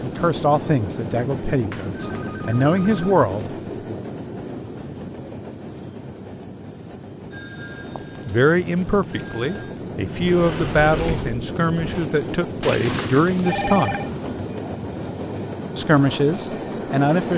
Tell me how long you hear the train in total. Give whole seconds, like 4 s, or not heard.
17 s.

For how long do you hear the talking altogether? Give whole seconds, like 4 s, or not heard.
11 s.